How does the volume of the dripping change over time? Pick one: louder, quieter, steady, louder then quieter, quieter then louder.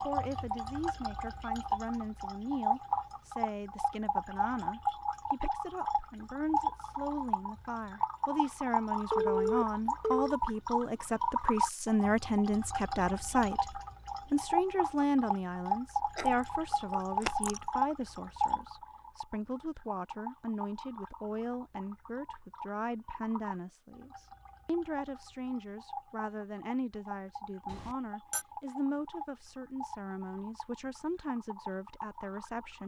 quieter.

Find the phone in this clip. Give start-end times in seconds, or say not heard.
9.1-10.3, 27.7-28.4.